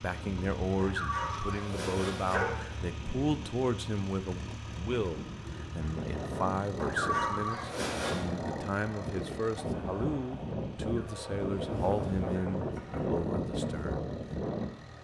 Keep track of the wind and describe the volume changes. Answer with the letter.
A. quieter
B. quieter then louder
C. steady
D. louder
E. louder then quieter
D.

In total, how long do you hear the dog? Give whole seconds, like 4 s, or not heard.
5 s.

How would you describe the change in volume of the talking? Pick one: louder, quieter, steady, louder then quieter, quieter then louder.
steady.